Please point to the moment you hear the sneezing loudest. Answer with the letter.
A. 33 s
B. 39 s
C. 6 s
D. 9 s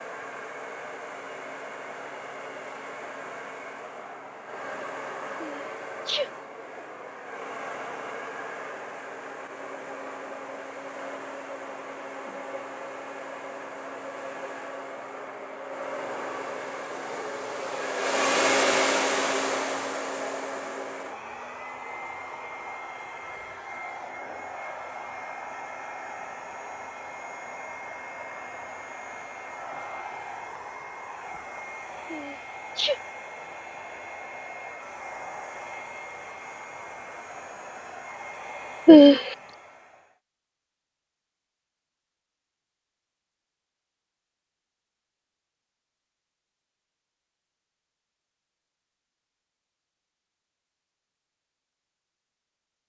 B.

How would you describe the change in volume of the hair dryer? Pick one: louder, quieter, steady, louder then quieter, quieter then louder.
louder then quieter.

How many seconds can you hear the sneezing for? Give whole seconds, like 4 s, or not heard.
2 s.